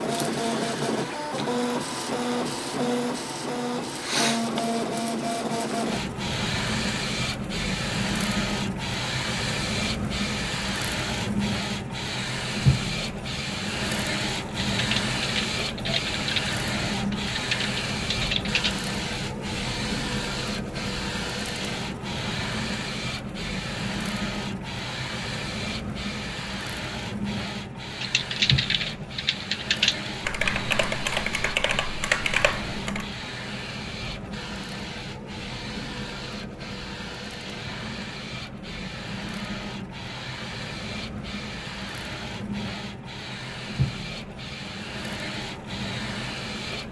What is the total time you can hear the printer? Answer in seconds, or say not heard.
47 s.